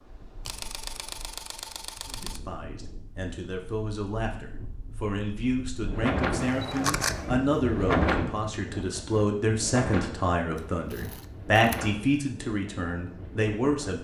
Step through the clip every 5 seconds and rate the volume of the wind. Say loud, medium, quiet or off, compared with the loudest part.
quiet, loud, medium.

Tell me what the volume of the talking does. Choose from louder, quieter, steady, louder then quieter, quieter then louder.
louder.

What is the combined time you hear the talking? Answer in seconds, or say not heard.
12 s.